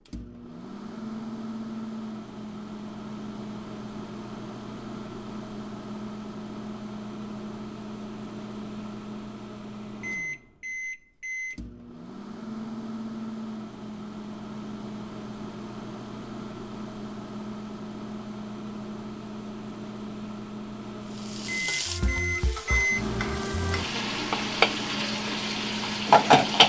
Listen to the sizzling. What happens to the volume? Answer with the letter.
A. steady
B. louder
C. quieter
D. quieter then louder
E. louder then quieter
B.